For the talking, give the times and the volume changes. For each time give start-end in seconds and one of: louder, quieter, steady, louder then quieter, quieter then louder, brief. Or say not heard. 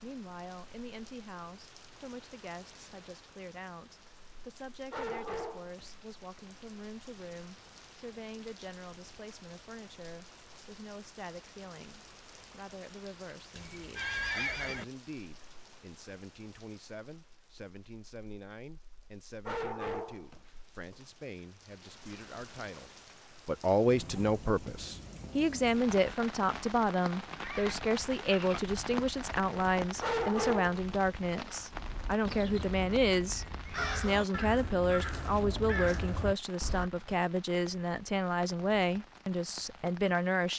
0.0-40.5 louder.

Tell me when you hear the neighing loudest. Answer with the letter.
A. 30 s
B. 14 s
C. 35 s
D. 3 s
B.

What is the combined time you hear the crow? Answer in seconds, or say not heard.
5 s.